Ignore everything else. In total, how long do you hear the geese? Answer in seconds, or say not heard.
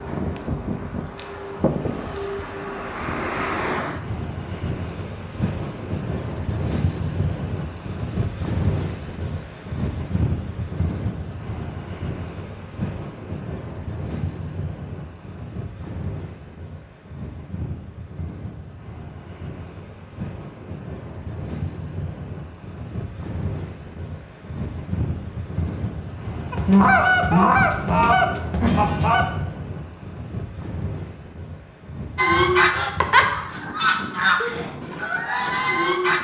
7 s.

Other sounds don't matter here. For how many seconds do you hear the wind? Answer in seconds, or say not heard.
36 s.